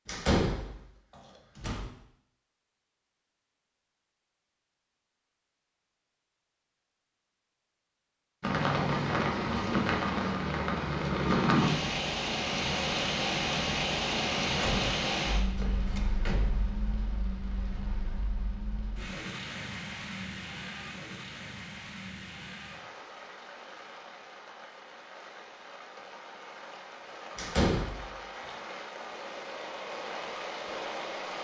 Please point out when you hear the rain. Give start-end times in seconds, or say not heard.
8.4-31.4.